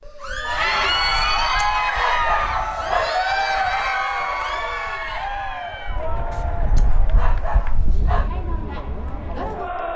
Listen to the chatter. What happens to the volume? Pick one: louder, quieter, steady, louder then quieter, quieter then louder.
quieter.